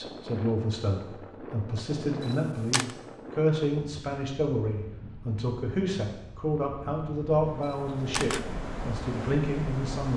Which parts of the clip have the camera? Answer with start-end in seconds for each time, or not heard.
2.2-3.0, 7.6-8.4.